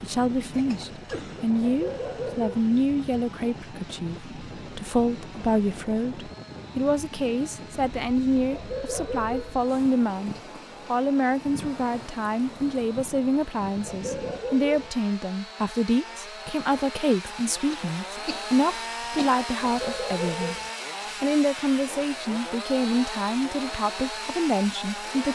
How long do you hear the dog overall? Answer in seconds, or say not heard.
4 s.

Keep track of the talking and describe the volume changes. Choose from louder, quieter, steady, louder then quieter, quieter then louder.
steady.